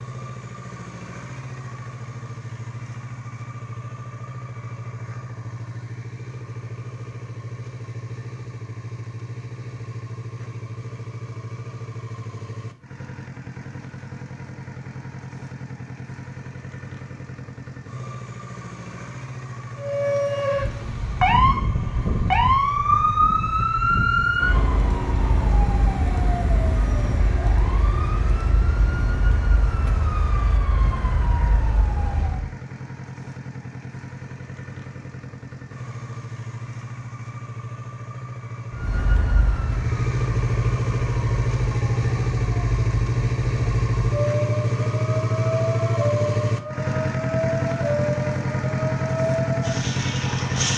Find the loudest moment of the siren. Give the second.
23 s.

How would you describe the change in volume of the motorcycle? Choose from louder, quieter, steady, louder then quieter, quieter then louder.
louder.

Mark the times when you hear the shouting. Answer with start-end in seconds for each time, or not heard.
not heard.